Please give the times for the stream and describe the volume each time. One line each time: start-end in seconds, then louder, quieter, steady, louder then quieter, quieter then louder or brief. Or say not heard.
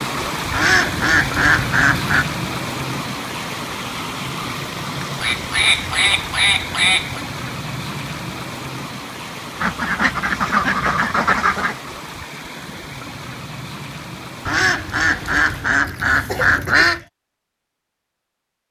0.0-15.8 quieter.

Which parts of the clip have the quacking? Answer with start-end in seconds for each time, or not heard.
0.5-2.2, 5.2-7.2, 9.6-11.8, 14.4-17.1.